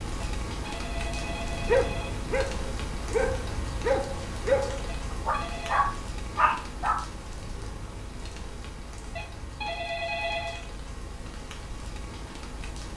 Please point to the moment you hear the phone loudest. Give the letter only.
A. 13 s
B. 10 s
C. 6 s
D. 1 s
B.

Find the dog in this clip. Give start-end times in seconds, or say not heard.
1.2-7.0.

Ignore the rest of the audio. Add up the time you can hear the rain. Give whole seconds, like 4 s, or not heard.
13 s.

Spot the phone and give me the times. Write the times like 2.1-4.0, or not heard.
0.2-2.2, 4.8-5.8, 9.2-10.7.